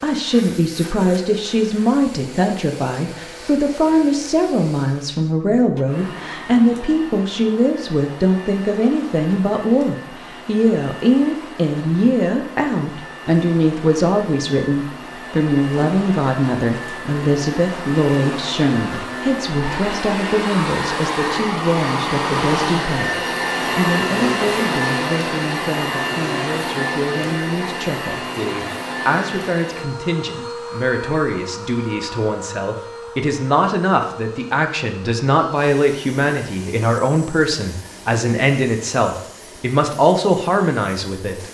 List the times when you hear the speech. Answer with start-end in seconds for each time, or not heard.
0.0-41.4.